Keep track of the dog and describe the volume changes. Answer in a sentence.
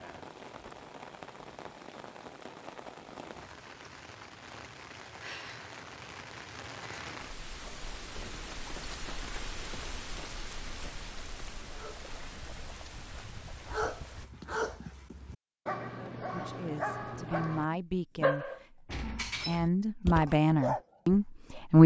The volume of the dog goes up.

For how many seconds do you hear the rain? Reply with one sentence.
You can hear the rain for 14 seconds altogether.